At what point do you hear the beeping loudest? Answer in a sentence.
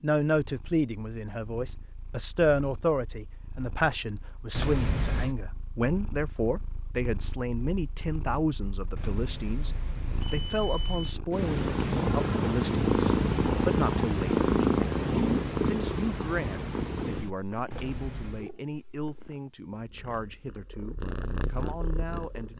The volume of the beeping peaks at 5 seconds.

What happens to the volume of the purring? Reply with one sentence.
The loudness of the purring goes up, then down.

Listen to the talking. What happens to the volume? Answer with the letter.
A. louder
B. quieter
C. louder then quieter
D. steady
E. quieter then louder
B.